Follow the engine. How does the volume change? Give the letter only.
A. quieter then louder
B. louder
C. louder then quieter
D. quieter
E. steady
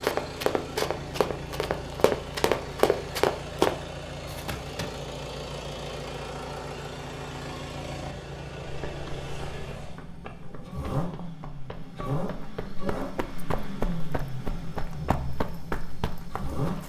E.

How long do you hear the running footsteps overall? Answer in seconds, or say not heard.
13 s.